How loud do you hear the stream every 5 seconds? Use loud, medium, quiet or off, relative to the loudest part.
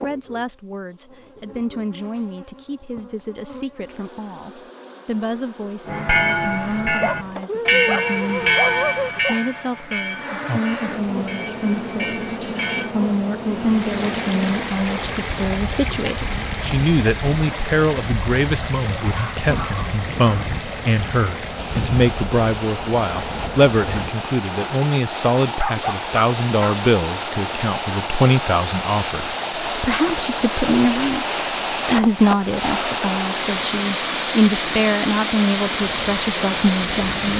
off, off, medium, medium, medium, loud, loud, loud.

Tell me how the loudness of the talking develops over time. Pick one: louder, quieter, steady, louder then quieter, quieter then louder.
louder.